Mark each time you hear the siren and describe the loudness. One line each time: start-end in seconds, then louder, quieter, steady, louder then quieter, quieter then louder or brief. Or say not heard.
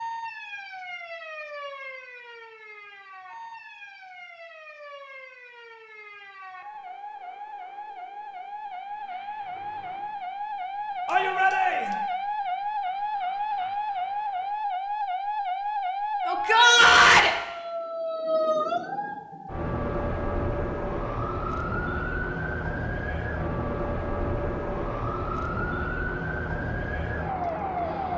0.0-28.1 louder.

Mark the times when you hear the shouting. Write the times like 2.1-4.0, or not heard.
11.1-12.0, 16.2-17.3.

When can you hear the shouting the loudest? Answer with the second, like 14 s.
17 s.